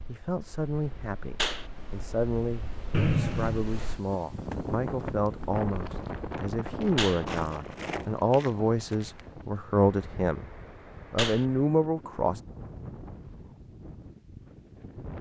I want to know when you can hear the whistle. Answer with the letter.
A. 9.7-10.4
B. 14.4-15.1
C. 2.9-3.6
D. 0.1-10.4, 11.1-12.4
C.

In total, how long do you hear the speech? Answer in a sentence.
The speech can be heard for 12 seconds in total.